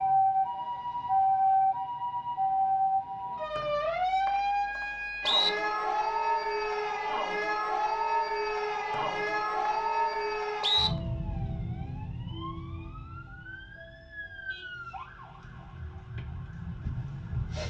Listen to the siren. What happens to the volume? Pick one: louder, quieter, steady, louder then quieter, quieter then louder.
quieter.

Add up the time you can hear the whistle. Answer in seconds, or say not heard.
4 s.